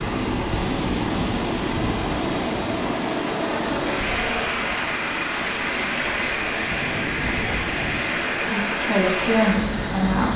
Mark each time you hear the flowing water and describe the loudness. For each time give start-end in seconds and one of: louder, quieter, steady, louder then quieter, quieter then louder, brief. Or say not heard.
0.0-10.3 steady.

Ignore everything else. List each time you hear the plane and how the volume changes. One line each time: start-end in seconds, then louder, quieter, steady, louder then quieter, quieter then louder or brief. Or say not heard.
0.0-10.3 steady.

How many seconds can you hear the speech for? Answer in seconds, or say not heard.
2 s.